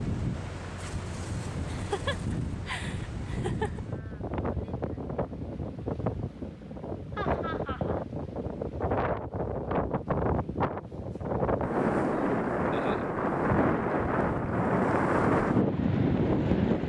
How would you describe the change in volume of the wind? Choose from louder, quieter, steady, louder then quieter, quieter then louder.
louder.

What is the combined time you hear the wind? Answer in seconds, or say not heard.
17 s.